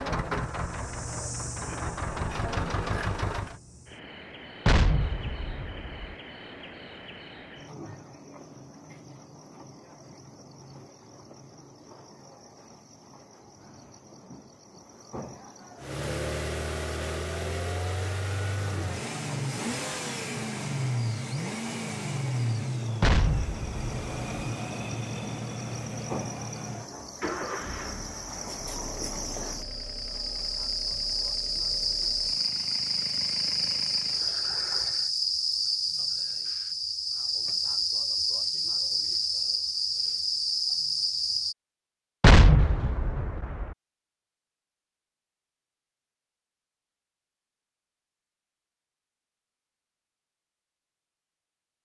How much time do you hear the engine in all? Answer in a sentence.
The engine can be heard for 23 seconds in total.